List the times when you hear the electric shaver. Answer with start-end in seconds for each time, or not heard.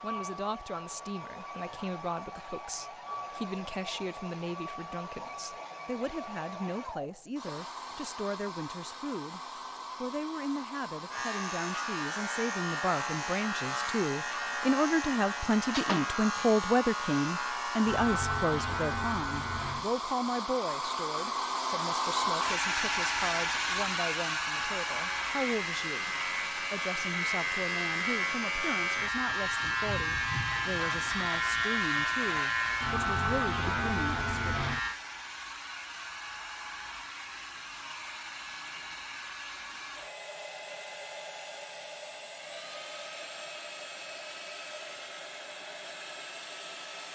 11.1-20.1, 24.6-35.0.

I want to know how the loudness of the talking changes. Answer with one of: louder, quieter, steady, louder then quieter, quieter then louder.
louder then quieter.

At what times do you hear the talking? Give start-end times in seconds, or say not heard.
0.0-9.4, 10.0-34.4.